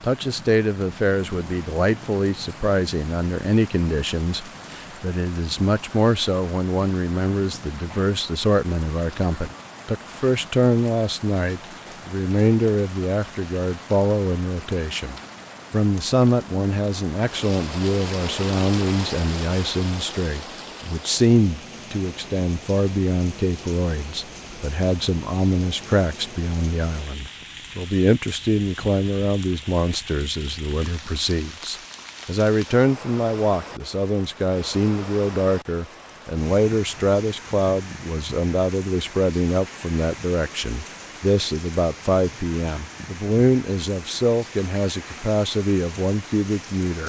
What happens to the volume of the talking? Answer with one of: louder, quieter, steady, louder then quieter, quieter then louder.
steady.